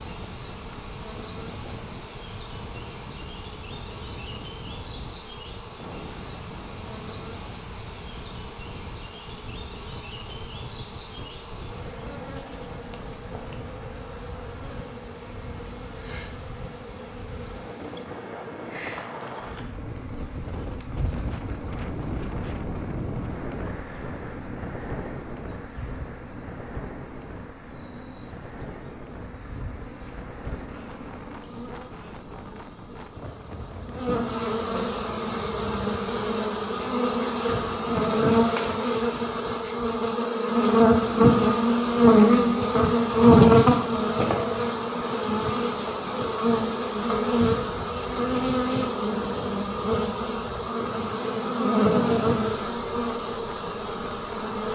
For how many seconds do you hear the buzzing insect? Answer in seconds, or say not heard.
55 s.